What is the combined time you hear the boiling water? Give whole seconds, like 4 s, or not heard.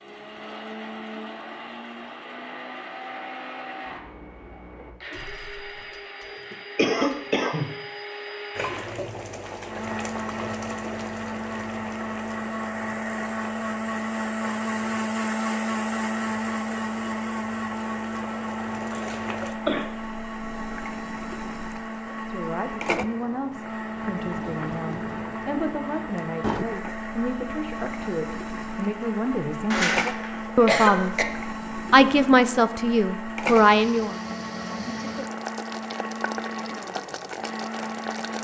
30 s.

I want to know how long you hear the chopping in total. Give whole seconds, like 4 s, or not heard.
not heard.